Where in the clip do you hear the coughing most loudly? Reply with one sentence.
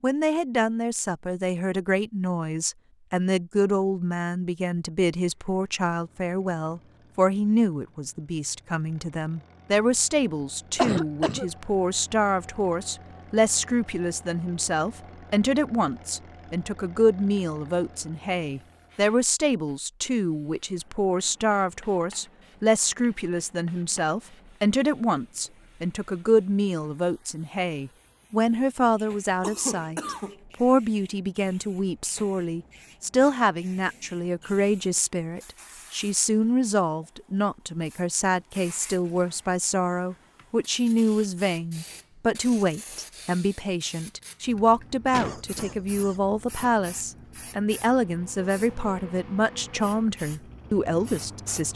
The loudest moment of the coughing is at 11 seconds.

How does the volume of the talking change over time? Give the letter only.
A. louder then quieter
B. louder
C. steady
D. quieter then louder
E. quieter
C.